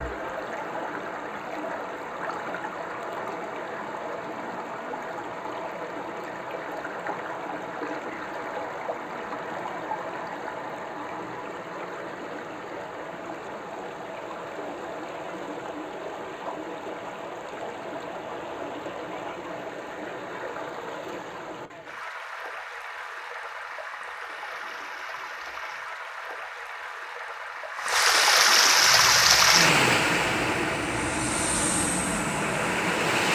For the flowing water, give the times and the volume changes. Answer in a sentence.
You can hear the flowing water from 0.0 to 33.3 s, getting louder.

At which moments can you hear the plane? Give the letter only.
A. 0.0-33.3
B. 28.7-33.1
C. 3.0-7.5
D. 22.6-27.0
B.